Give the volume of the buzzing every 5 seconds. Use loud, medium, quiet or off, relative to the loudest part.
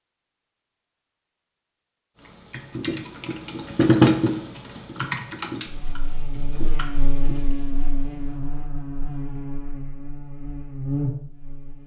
off, loud, loud.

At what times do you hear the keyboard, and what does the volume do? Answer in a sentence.
The keyboard can be heard from 2.2 to 7.5 s, getting louder then quieter.